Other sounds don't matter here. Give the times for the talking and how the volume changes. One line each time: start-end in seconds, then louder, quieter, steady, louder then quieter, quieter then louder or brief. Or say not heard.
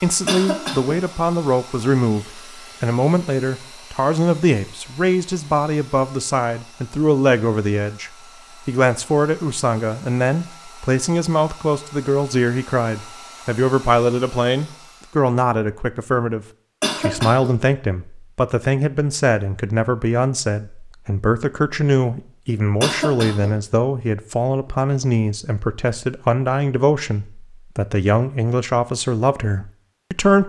0.0-30.4 steady.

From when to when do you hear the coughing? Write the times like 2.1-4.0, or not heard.
0.2-1.0, 16.8-17.6, 22.8-23.6.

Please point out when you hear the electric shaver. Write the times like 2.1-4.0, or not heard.
not heard.